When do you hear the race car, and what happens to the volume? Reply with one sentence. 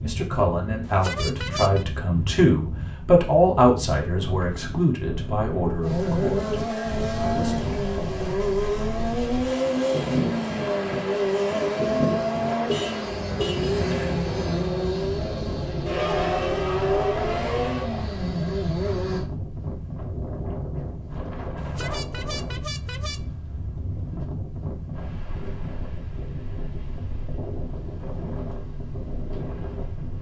You can hear the race car from 5.8 to 19.2 s, at a steady volume.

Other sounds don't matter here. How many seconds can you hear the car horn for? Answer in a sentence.
The car horn can be heard for 4 seconds in total.